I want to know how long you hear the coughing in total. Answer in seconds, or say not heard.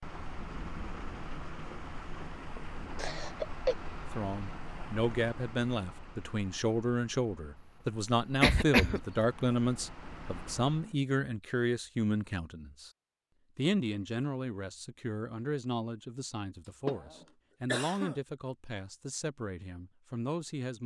3 s.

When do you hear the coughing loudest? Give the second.
9 s.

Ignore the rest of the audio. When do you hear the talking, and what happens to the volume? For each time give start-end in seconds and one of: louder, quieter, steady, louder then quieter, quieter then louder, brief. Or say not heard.
4.1-12.9 steady
13.6-20.8 steady.